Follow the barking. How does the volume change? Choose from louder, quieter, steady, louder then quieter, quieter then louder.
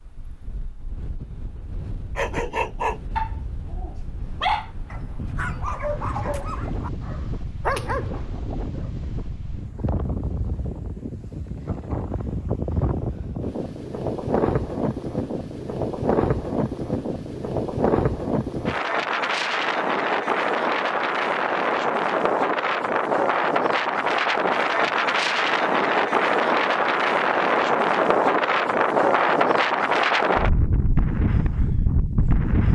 quieter then louder.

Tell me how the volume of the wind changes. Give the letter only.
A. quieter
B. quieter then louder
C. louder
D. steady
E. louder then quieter
C.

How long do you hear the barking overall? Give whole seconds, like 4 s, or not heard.
7 s.